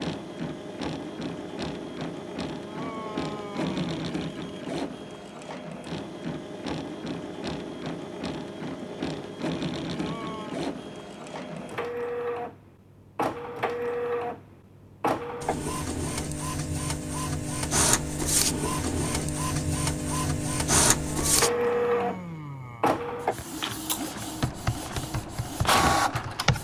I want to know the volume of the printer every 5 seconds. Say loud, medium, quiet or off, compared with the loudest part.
medium, medium, medium, loud, loud, loud.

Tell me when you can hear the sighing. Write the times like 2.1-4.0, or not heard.
2.6-4.0, 9.9-10.6, 21.1-22.9.